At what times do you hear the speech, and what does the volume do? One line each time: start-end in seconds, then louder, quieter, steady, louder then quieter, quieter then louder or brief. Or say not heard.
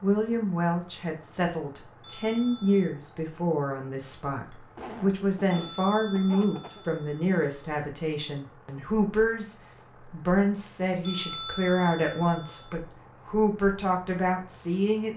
0.0-15.1 steady.